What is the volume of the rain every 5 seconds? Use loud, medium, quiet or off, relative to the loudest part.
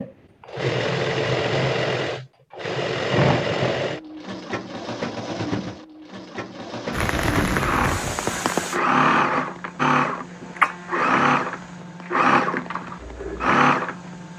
off, loud, quiet.